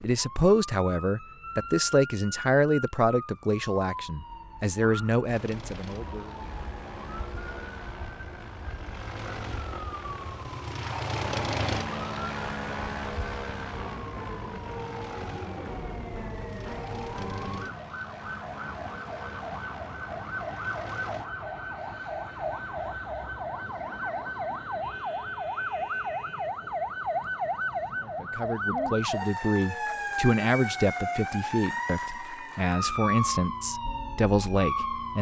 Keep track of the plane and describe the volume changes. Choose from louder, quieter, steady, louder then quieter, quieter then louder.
louder then quieter.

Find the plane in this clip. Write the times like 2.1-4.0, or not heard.
5.2-21.3.